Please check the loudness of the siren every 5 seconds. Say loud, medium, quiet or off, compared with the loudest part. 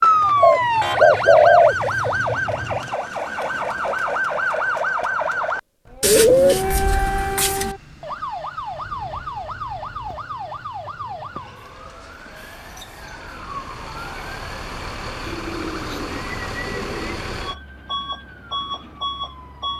loud, medium, quiet, quiet.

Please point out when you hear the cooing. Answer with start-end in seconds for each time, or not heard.
0.4-1.8, 6.0-7.8, 9.9-11.5, 15.2-17.2.